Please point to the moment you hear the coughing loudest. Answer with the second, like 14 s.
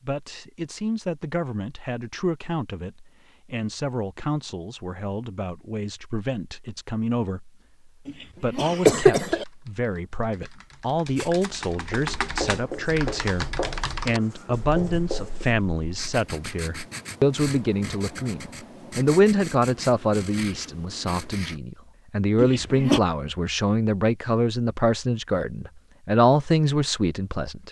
9 s.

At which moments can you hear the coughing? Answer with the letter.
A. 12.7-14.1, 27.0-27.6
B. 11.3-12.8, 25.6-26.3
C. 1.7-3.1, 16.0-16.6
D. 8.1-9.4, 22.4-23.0
D.